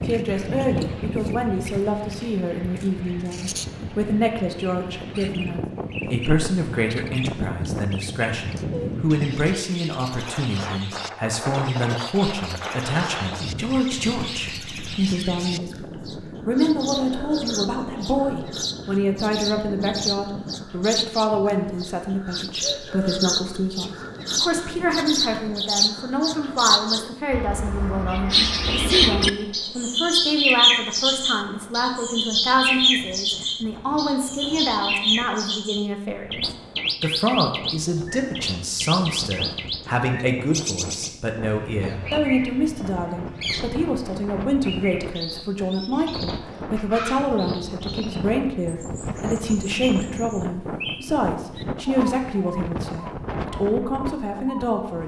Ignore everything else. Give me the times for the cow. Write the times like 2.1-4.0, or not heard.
not heard.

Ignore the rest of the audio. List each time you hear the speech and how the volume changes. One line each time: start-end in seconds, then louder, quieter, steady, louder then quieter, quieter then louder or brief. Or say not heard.
0.0-55.0 steady.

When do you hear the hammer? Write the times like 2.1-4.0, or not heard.
not heard.